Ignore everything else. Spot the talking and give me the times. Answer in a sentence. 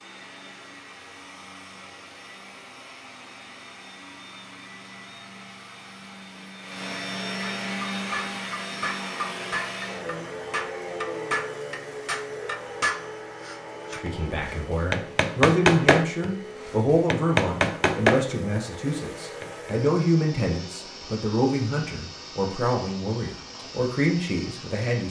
The talking can be heard from 13.9 to 25.0 s.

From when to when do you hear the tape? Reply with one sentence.
The tape can't be heard in this clip.